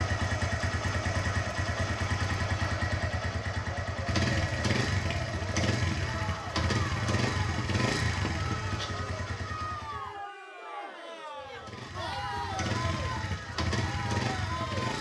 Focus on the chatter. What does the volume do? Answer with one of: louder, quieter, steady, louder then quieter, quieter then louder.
steady.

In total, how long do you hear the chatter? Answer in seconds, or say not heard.
15 s.